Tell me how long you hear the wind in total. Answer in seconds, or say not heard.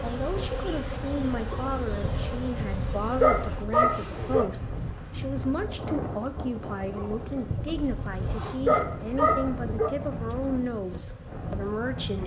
12 s.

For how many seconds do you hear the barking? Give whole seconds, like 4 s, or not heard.
6 s.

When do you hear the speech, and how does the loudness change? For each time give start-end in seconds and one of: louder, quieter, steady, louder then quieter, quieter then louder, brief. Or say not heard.
0.0-12.2 steady.